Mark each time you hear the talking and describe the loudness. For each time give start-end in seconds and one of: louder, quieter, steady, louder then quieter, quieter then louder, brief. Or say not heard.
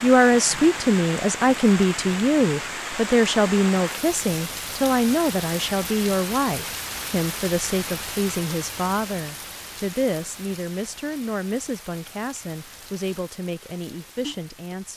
0.0-14.9 quieter.